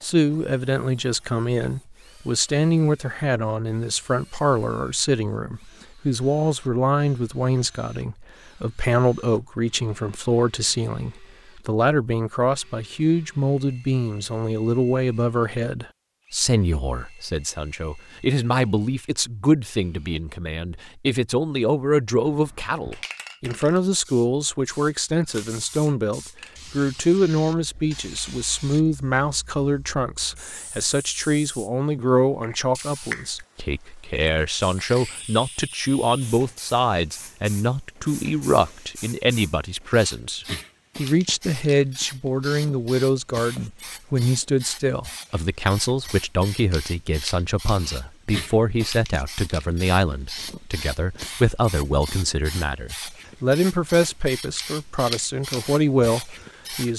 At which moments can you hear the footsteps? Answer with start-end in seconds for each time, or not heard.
not heard.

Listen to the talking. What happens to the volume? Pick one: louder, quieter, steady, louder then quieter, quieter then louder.
steady.